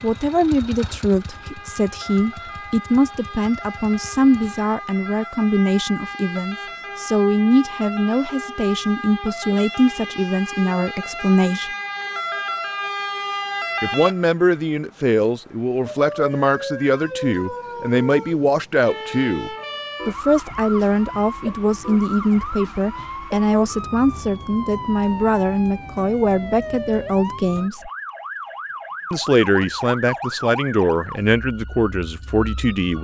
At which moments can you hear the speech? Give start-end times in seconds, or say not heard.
0.0-11.7, 13.8-27.9, 29.1-33.0.